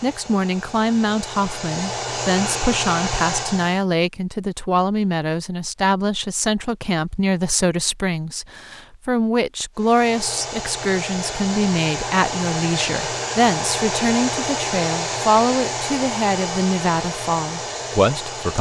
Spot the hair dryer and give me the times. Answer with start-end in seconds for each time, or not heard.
0.0-3.9, 9.8-18.5.